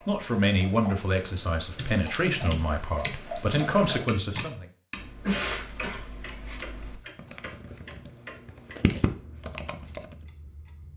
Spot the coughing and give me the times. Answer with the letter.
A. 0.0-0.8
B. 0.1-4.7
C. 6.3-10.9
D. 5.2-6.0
D.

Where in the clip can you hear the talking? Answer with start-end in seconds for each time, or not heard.
0.1-4.7.